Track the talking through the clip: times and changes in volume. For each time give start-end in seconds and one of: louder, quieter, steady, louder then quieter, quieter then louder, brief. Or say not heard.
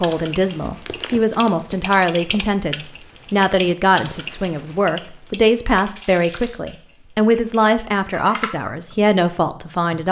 0.0-10.0 steady.